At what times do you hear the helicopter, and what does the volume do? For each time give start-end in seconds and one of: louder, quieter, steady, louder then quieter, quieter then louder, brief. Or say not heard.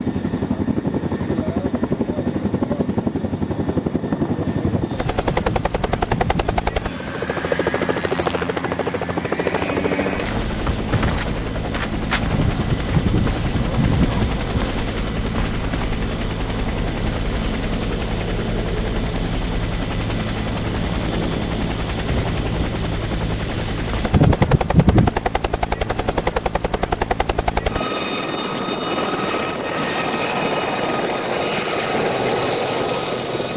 0.0-33.5 steady.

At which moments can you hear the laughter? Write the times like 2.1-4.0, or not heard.
4.5-6.7, 12.2-14.4, 24.0-25.1.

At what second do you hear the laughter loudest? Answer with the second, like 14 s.
24 s.